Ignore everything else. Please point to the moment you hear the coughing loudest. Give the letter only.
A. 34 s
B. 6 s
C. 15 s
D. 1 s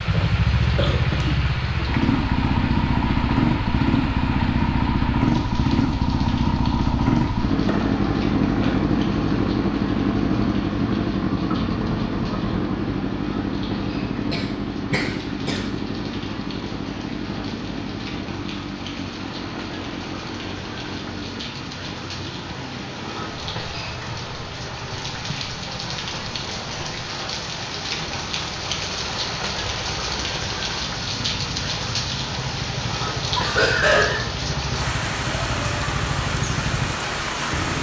A.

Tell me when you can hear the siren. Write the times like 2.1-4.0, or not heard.
not heard.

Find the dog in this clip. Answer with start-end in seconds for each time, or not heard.
not heard.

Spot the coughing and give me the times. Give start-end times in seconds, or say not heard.
0.1-1.9, 14.3-15.6, 33.4-34.2.